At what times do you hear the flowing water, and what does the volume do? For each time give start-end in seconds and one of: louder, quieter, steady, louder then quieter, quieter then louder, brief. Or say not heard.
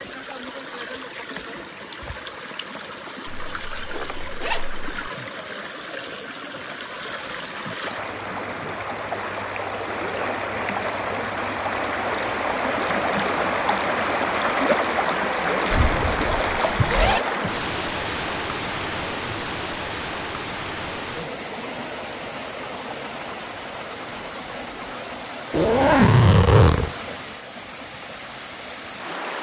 0.0-29.3 louder then quieter.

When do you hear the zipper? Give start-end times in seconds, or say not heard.
3.2-5.1, 15.7-17.2, 25.5-26.9.